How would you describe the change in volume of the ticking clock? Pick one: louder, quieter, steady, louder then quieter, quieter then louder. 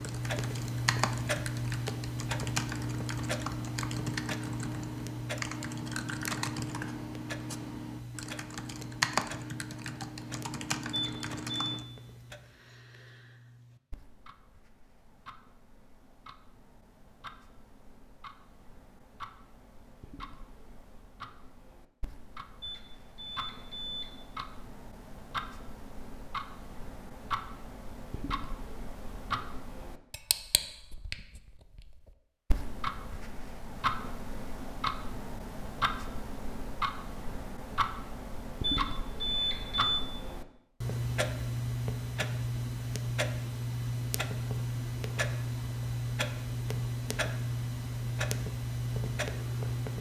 quieter then louder.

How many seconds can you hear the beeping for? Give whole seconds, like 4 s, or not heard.
4 s.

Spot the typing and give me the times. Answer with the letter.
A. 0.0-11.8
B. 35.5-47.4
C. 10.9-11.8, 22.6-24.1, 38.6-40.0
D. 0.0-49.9
A.